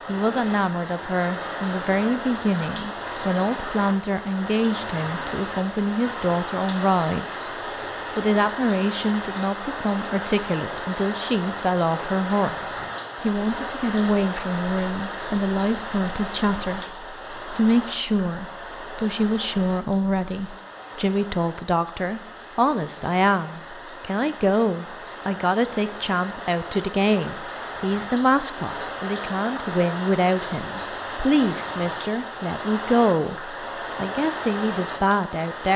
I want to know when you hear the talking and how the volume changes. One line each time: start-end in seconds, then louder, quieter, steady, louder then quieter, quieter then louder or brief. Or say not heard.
0.1-7.5 steady
8.2-35.7 steady.